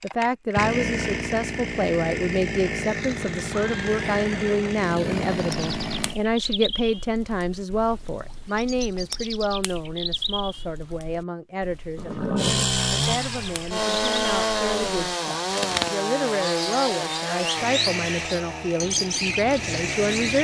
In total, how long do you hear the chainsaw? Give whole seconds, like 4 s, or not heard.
14 s.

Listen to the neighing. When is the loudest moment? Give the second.
12 s.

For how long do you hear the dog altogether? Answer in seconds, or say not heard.
not heard.